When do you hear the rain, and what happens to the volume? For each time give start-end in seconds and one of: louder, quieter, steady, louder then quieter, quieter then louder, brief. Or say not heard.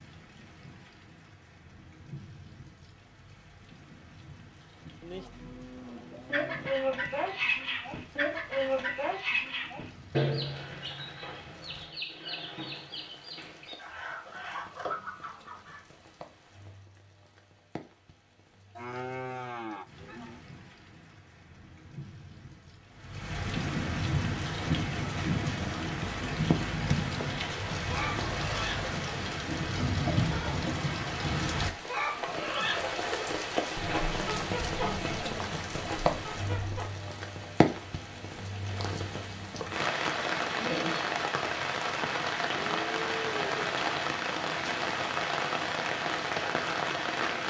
0.0-47.4 louder.